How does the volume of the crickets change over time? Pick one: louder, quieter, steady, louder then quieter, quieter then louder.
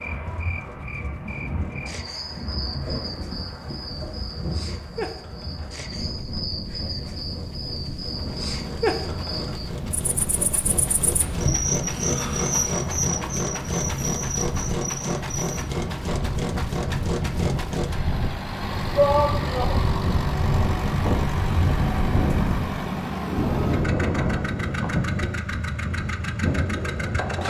louder.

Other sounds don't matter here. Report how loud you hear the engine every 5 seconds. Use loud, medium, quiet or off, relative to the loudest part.
quiet, quiet, loud, loud, loud, loud.